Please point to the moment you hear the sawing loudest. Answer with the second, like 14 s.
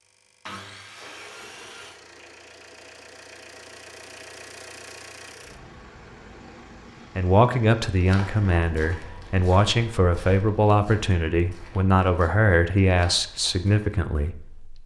1 s.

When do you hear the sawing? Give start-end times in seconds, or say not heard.
0.5-2.0.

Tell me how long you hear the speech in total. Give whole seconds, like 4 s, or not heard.
8 s.